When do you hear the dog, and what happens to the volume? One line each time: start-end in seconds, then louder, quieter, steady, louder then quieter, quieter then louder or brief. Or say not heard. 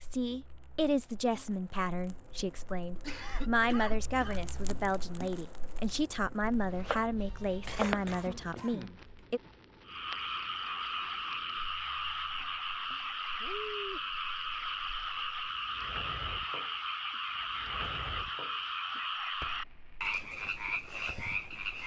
not heard.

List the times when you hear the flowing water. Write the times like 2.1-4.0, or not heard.
not heard.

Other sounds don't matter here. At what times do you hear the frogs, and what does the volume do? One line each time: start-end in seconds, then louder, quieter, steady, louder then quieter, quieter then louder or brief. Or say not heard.
9.8-21.8 steady.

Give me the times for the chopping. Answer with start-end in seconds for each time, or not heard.
6.4-8.6.